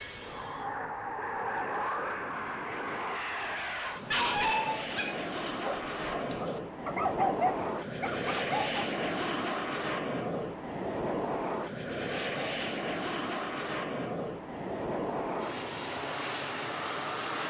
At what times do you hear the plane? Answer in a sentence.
You can hear the plane from 0.0 to 17.4 s.